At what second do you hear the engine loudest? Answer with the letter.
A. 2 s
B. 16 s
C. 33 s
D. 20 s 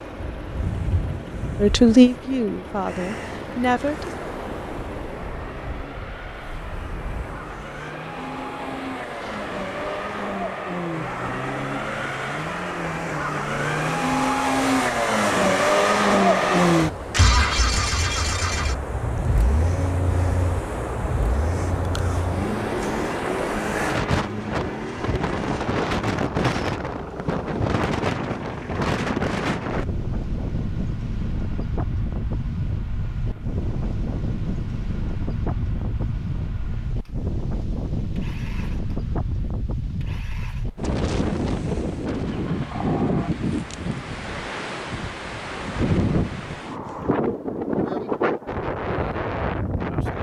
B.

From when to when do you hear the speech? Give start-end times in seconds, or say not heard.
1.6-4.1.